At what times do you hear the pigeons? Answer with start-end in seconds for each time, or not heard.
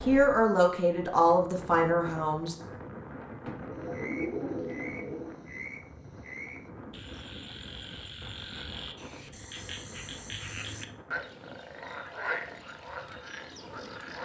3.4-5.4.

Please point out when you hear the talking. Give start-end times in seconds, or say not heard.
0.1-2.5.